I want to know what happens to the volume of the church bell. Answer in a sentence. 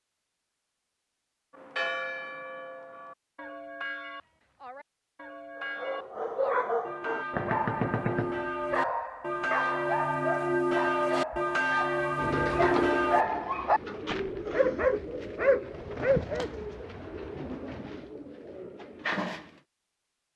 The volume of the church bell goes up.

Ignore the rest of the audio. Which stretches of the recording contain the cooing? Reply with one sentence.
You can hear the cooing from 12.2 to 19.6 s.